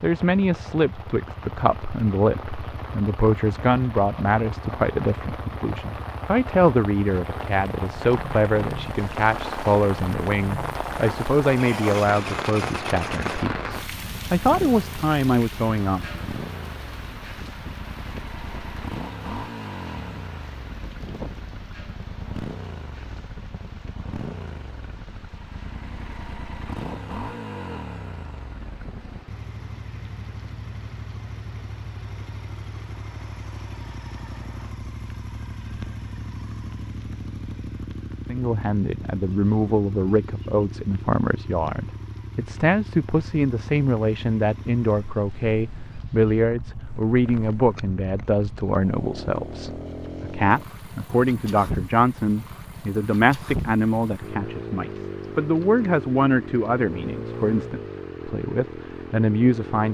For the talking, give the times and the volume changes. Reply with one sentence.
The talking can be heard from 0.0 to 16.1 s, at a steady volume; and from 38.2 to 59.8 s, at a steady volume.